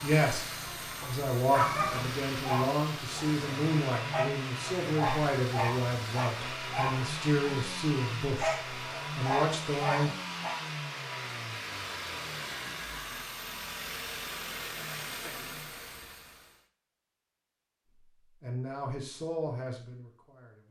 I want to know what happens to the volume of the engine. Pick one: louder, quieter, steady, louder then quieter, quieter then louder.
steady.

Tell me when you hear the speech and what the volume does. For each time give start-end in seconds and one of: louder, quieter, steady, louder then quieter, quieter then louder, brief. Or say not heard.
0.0-10.1 steady
18.4-20.6 brief.